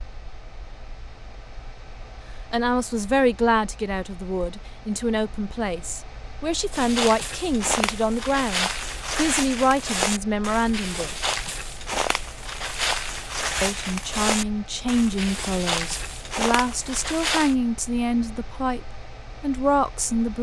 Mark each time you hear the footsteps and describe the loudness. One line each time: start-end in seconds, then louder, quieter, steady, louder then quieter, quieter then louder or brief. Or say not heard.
6.7-17.6 steady.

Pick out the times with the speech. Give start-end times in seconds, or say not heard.
2.5-11.1, 13.6-20.3.